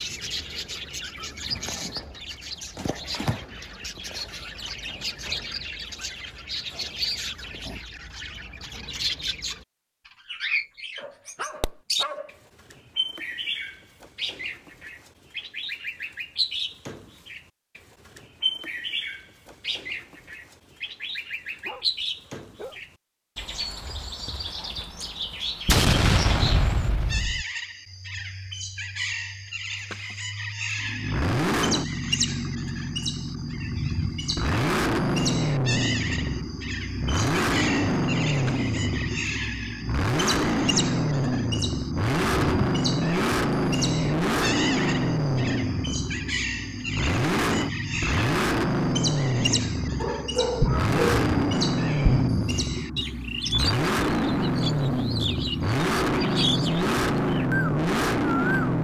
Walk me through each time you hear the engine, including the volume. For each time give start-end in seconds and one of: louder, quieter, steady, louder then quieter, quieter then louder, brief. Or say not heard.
30.8-58.7 steady.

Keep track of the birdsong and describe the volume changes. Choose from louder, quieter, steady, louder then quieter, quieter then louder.
steady.